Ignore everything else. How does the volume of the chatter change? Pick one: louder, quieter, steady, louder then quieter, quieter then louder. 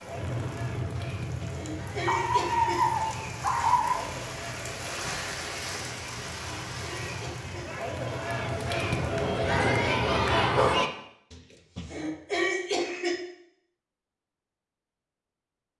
louder.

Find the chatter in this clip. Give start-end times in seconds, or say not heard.
0.0-10.9.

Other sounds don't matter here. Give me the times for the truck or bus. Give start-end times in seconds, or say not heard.
0.0-10.8.